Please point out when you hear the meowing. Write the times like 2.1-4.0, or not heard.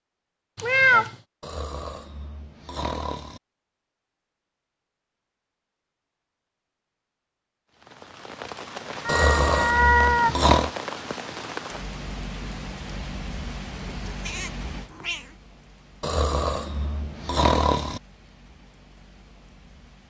0.6-1.1, 9.1-10.3, 13.8-15.3.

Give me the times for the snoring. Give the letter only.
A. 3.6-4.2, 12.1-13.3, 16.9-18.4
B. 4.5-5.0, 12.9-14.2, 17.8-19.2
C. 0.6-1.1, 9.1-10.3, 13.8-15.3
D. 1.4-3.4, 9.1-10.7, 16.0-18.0
D.